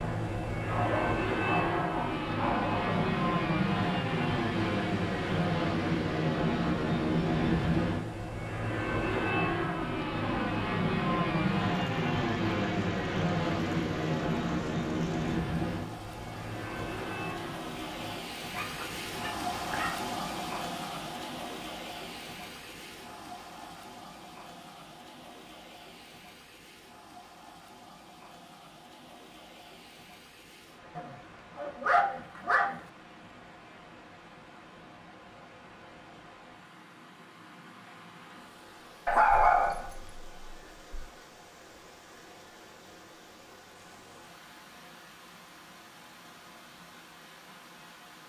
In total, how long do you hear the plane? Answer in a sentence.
You can hear the plane for 18 seconds altogether.